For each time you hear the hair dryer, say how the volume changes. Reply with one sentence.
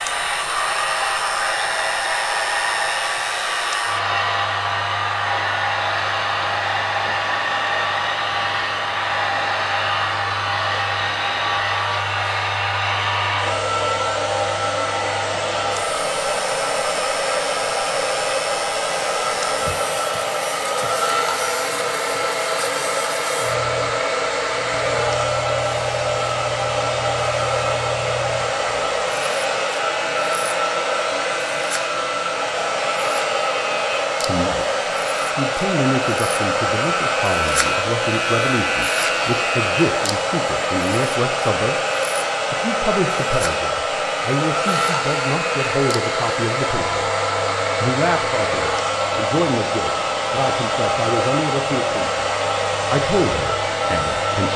You can hear the hair dryer from 0.0 to 54.5 s, at a steady volume.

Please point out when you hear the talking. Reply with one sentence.
You can hear the talking from 34.2 to 34.6 s, from 35.4 to 41.8 s, from 42.5 to 47.0 s, from 47.8 to 52.2 s and from 52.9 to 54.5 s.